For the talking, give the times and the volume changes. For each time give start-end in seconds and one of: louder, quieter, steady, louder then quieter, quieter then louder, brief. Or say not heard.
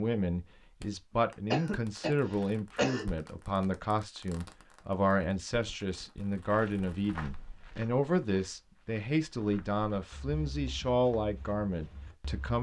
0.0-12.5 steady.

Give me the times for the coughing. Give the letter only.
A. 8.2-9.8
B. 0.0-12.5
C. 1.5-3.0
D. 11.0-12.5
C.